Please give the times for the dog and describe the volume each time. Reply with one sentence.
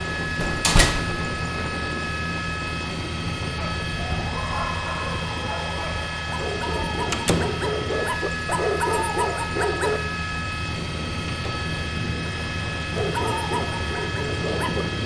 The dog can be heard from 3.5 to 10.0 s, getting louder; and briefly from 12.9 to 14.8 s.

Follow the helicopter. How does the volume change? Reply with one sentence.
The loudness of the helicopter stays about the same.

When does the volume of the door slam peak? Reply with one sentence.
The volume of the door slam peaks at 1 second.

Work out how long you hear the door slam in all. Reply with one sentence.
You can hear the door slam for 2 seconds altogether.